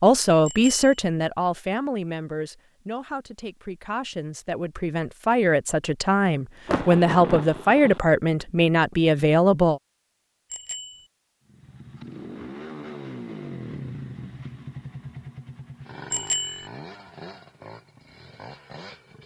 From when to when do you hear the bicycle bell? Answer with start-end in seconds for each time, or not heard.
0.5-0.9, 10.5-11.1, 16.1-16.6.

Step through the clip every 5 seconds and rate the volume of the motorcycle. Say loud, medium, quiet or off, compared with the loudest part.
off, off, loud, medium.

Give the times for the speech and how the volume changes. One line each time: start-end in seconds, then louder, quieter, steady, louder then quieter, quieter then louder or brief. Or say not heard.
0.0-9.8 quieter then louder.